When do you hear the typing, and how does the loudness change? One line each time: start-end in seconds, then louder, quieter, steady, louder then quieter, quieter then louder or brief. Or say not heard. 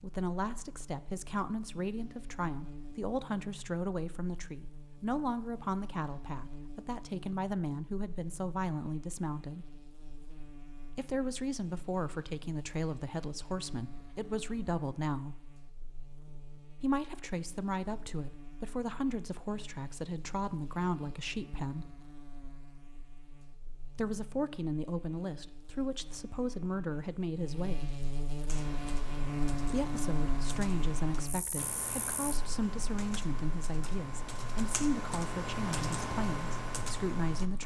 28.4-37.6 louder.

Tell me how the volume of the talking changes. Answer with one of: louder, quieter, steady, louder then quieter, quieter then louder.
steady.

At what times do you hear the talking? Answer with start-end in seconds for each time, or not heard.
0.0-9.7, 10.9-15.4, 16.8-21.9, 23.9-27.9, 29.7-37.6.